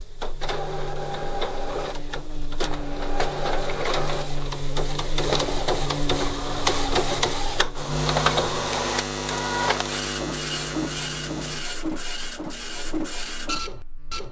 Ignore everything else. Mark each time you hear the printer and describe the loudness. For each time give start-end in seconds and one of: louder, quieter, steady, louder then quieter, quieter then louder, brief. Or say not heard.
0.0-14.2 louder then quieter.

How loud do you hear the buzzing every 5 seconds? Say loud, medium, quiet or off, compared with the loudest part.
medium, loud, loud.